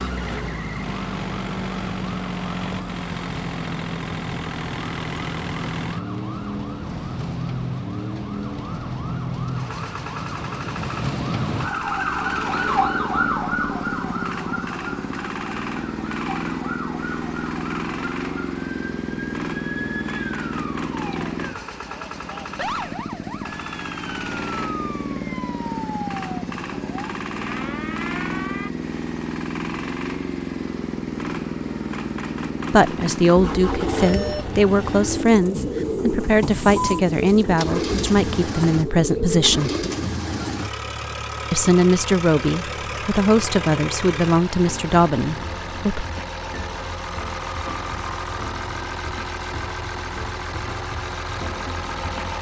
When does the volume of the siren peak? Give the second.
13 s.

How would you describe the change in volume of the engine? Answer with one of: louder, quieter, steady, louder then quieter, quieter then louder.
steady.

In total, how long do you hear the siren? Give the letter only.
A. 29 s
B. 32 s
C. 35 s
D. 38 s
A.